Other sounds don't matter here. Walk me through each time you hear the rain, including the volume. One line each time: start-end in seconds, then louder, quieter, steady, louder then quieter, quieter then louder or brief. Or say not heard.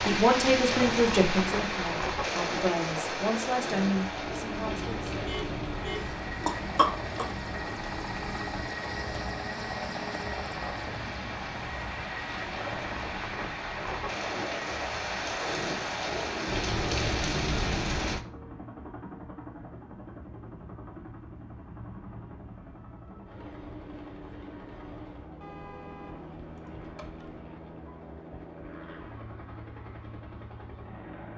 0.0-18.2 quieter then louder.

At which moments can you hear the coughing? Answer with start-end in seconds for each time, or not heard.
6.0-7.2.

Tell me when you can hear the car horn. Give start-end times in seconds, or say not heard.
5.2-6.1, 25.4-27.4.